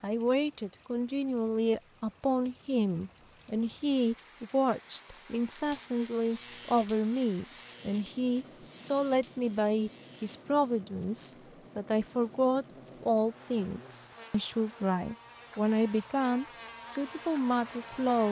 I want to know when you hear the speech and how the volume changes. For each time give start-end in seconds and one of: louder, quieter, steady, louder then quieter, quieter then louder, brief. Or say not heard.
0.0-18.2 steady.